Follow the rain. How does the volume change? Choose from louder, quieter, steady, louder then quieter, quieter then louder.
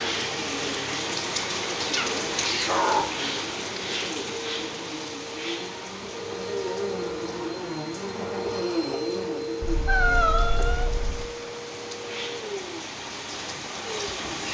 quieter then louder.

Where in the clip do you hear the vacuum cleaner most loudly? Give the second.
9 s.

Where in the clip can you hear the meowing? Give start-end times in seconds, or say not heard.
1.8-3.0, 9.6-11.2.